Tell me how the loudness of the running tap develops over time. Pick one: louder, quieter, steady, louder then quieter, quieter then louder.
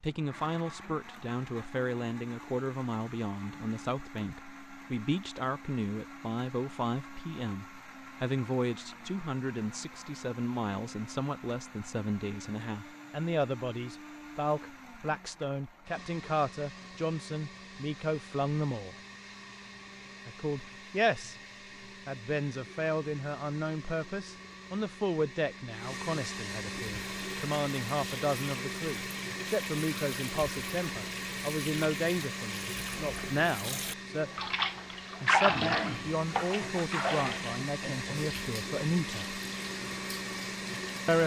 louder then quieter.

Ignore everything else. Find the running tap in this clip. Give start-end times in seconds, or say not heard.
26.9-41.2.